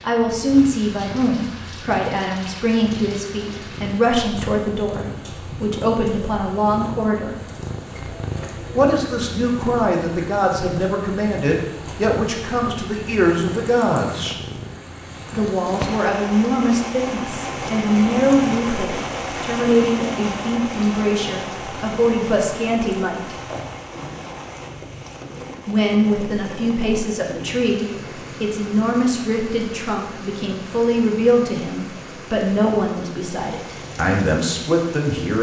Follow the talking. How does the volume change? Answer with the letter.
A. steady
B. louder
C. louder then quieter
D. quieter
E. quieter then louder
A.